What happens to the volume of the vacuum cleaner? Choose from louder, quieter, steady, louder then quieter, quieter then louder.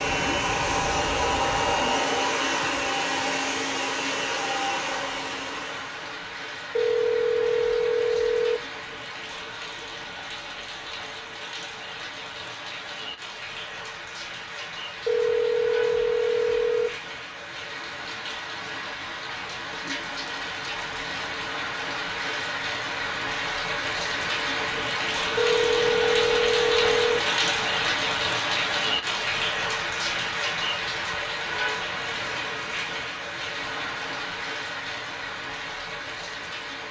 quieter.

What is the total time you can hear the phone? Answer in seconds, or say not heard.
6 s.